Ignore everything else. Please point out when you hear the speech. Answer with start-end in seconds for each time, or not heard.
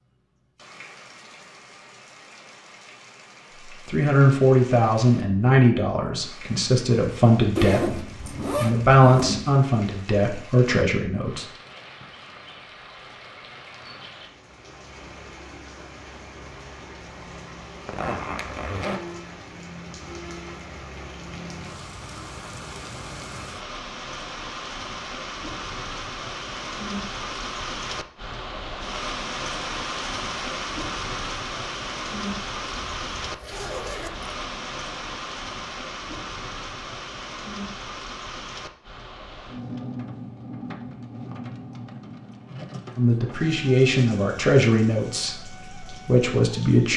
3.6-11.4, 43.0-46.9.